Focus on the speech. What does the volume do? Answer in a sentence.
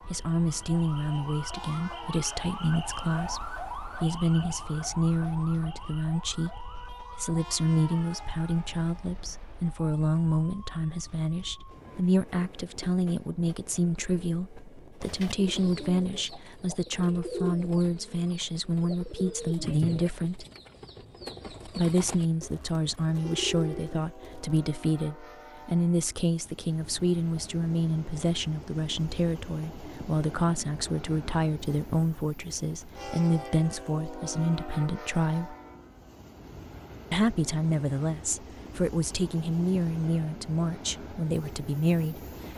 The loudness of the speech stays about the same.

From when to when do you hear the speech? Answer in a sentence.
You can hear the speech from 0.1 to 20.4 s, from 21.6 to 35.5 s and from 37.1 to 42.2 s.